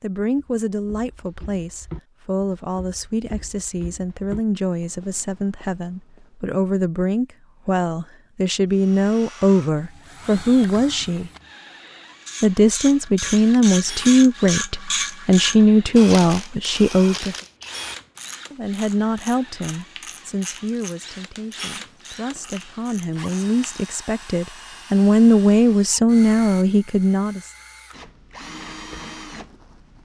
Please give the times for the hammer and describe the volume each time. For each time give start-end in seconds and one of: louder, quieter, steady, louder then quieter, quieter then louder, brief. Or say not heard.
not heard.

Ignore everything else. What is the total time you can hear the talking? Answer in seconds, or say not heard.
25 s.